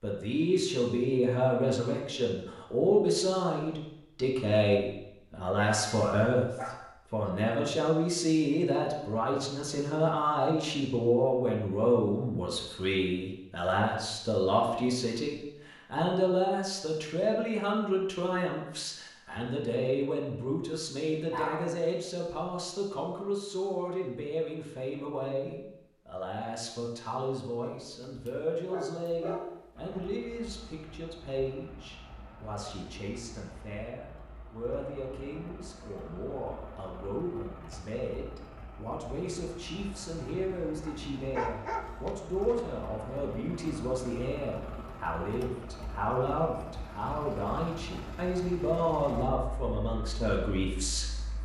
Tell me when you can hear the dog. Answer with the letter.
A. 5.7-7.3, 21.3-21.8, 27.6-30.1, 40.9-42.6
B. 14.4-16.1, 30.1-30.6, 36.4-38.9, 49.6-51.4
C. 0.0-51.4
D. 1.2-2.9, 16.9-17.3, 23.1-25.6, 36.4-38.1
A.